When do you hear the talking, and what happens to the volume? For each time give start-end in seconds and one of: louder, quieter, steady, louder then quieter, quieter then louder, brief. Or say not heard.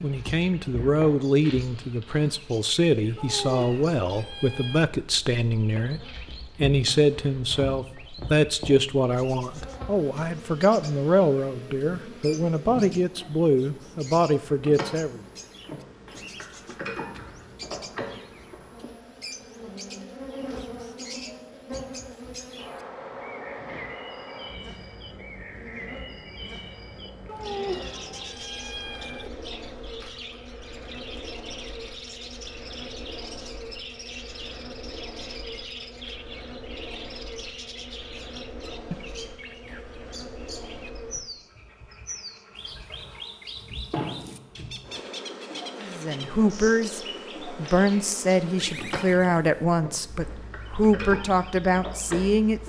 0.0-15.2 steady
45.8-52.6 steady.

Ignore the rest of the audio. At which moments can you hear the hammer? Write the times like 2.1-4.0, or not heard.
not heard.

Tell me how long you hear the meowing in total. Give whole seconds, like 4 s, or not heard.
4 s.